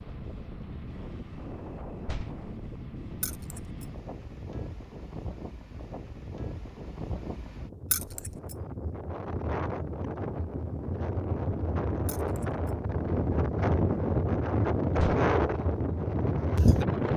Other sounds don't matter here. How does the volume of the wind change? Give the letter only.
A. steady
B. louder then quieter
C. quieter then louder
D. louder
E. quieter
D.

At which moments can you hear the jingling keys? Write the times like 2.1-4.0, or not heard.
3.2-3.7, 7.9-8.6, 12.1-12.6.